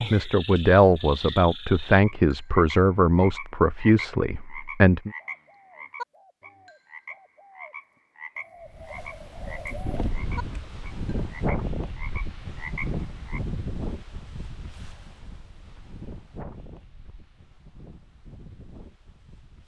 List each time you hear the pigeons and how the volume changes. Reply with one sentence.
The pigeons can be heard from 5.1 to 10.1 s, getting louder.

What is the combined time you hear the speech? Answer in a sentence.
The speech can be heard for 5 seconds in total.